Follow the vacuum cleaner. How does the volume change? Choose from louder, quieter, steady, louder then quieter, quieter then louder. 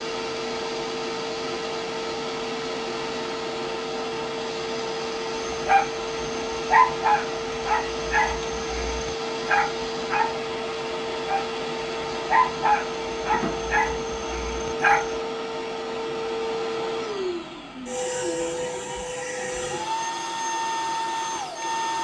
steady.